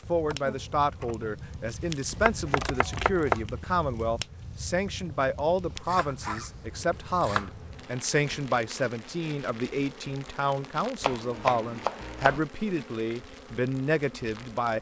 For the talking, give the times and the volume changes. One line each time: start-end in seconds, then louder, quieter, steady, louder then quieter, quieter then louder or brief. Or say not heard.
0.1-14.7 steady.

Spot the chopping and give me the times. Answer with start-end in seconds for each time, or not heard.
2.1-3.4, 5.8-6.5, 7.1-7.5, 11.0-12.4.